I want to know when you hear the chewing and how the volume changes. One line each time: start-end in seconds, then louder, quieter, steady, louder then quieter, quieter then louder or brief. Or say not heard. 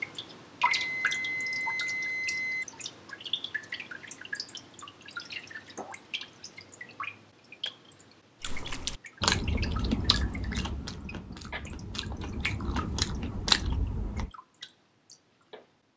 8.4-14.3 quieter then louder.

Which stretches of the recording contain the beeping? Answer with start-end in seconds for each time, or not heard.
0.8-2.6.